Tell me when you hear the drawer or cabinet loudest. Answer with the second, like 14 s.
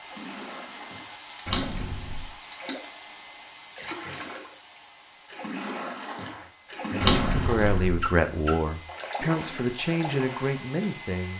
7 s.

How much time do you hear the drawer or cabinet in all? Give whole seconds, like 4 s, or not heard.
2 s.